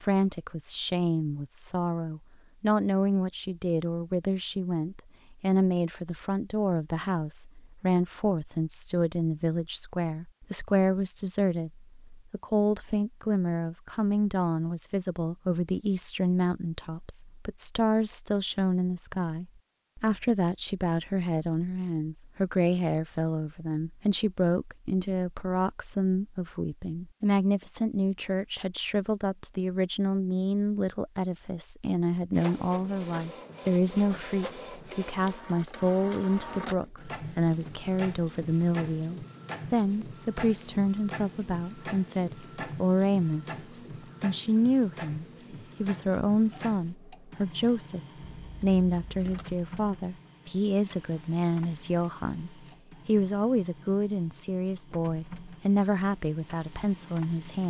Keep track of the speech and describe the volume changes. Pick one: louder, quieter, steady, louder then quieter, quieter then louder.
steady.